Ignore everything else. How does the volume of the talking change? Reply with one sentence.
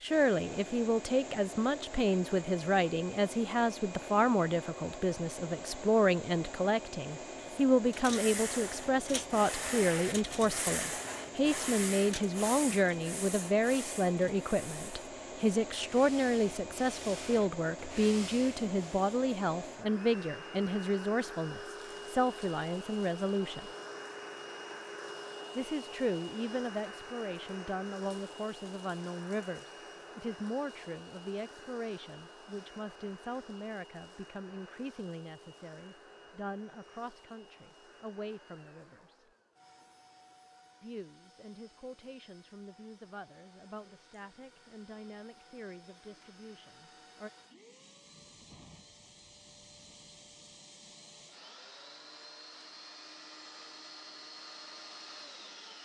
The volume of the talking goes down.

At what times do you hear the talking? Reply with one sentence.
The talking can be heard from 0.0 to 23.7 s, from 25.6 to 39.3 s and from 40.8 to 47.3 s.